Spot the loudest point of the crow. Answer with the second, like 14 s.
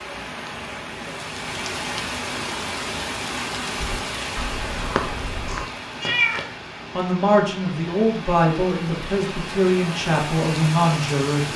5 s.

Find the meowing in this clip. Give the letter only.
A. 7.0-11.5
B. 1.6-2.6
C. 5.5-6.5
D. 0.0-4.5
C.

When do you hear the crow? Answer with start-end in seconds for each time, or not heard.
3.8-5.7.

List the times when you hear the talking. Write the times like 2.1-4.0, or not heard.
7.0-11.5.